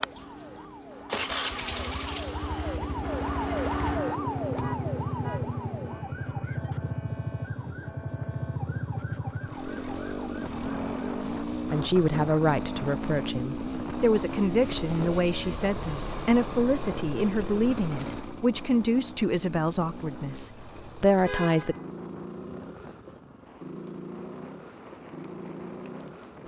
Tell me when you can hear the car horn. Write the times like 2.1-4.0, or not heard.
4.5-5.5, 21.2-21.8.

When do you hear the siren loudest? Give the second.
4 s.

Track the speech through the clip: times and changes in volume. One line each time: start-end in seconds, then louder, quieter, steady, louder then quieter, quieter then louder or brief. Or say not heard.
11.2-21.8 steady.